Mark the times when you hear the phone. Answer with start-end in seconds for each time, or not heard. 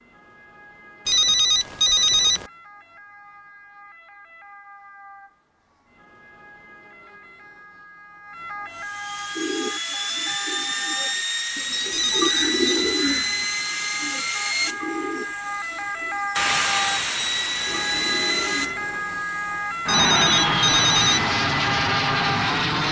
1.1-2.5, 11.9-12.6, 19.9-21.3.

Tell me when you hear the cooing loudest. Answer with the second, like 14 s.
13 s.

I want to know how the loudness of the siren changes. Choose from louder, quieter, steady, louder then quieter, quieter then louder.
louder.